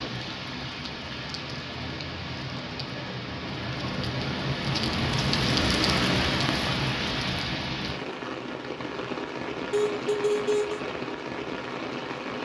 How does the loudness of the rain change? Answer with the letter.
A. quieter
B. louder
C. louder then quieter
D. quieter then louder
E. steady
C.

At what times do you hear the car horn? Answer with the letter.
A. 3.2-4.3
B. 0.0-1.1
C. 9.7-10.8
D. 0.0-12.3
C.